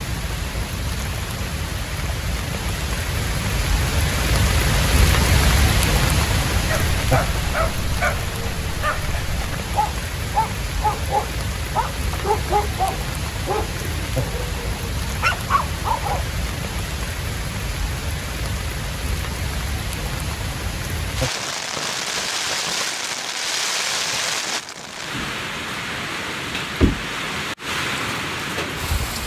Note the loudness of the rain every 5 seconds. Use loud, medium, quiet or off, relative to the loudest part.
loud, loud, medium, medium, loud, loud.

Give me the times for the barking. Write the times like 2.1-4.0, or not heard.
6.7-16.3.